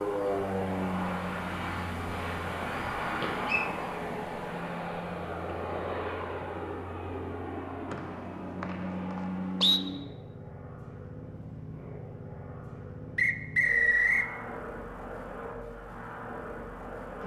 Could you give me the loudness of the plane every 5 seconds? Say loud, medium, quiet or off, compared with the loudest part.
loud, loud, medium, medium.